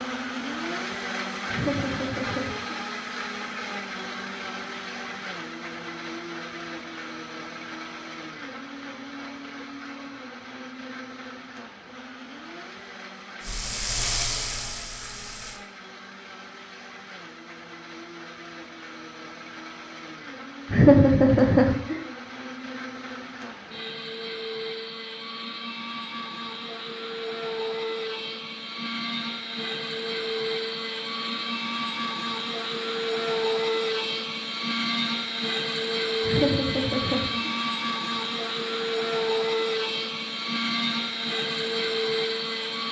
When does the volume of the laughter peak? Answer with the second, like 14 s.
21 s.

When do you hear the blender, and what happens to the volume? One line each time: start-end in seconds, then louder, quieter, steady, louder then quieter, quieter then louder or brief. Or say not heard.
0.0-42.8 quieter then louder.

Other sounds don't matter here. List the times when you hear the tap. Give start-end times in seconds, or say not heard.
13.4-15.6.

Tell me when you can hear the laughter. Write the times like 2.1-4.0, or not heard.
1.5-2.8, 20.7-21.9, 36.2-37.5.